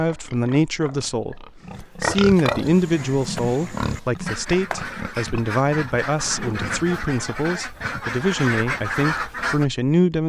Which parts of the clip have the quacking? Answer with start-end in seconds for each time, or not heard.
2.6-9.7.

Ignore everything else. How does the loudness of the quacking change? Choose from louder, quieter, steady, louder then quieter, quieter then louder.
louder.